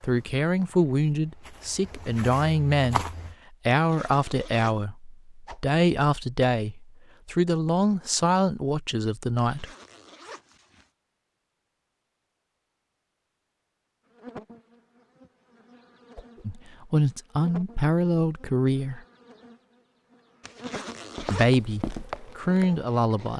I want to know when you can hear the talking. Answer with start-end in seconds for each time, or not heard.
0.0-3.0, 3.6-9.7, 16.4-19.0, 21.3-23.3.